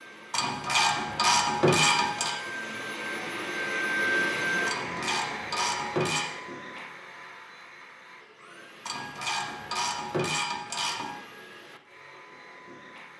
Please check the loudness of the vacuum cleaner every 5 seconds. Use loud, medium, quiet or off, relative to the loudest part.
loud, medium, quiet.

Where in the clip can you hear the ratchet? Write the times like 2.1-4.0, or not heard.
0.3-2.4, 4.7-6.2, 8.8-11.2.